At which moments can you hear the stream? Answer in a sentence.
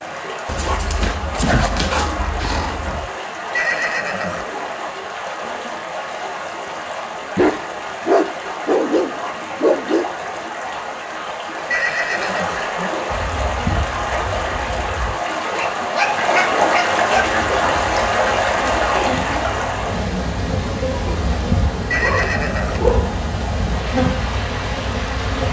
You can hear the stream from 0.0 to 25.4 s.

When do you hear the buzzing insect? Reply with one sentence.
The buzzing insect can be heard from 13.1 to 15.2 s and from 17.1 to 25.4 s.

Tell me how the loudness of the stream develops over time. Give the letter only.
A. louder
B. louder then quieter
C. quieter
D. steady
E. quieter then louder
B.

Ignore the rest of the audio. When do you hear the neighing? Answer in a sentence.
You can hear the neighing from 3.5 to 4.5 s, from 11.7 to 12.9 s and from 21.9 to 22.9 s.